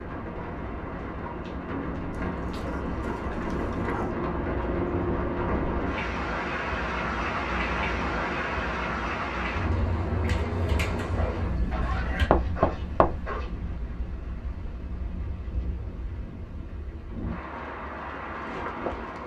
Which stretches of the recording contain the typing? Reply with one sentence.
The typing can be heard from 10.1 to 12.3 s.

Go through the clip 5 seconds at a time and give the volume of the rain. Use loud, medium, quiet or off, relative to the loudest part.
loud, loud, medium, medium.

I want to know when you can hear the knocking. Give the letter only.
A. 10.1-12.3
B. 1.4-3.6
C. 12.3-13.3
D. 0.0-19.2
C.